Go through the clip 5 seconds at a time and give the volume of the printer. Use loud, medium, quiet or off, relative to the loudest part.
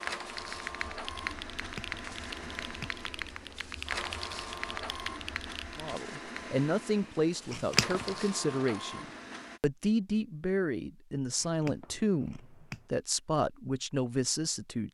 loud, loud, off.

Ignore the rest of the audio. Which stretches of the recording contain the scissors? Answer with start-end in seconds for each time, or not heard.
1.5-3.0, 7.5-8.1, 11.4-12.8.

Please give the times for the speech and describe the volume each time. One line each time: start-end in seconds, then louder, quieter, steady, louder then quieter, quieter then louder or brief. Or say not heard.
5.8-14.8 steady.